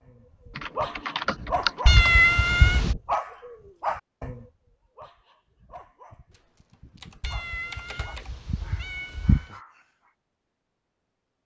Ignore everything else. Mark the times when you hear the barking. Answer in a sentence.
You can hear the barking from 0.1 to 10.1 s.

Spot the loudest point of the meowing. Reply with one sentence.
The loudest moment of the meowing is at 2 seconds.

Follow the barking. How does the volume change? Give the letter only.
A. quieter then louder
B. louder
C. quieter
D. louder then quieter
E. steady
C.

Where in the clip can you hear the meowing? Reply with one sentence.
The meowing can be heard from 1.9 to 3.0 s and from 7.2 to 9.4 s.